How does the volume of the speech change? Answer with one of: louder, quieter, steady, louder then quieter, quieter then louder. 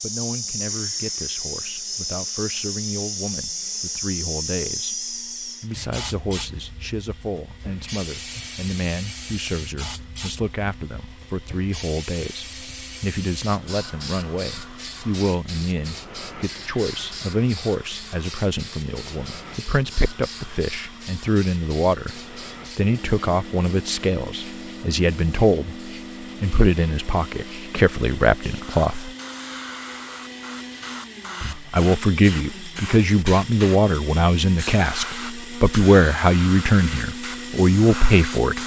louder.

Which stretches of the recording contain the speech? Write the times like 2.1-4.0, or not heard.
0.0-29.1, 31.4-38.6.